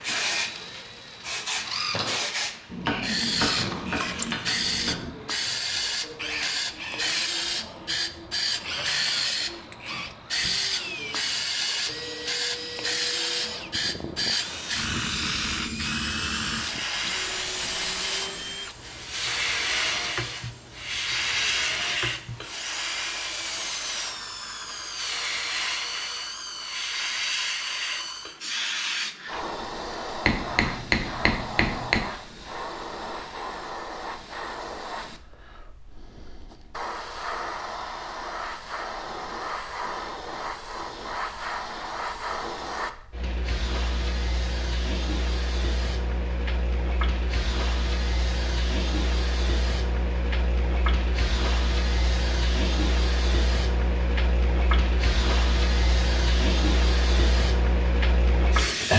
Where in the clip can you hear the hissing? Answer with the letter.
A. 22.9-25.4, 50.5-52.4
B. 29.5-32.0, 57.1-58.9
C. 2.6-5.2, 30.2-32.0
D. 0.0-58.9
D.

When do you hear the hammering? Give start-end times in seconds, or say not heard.
2.6-5.2, 30.2-32.0.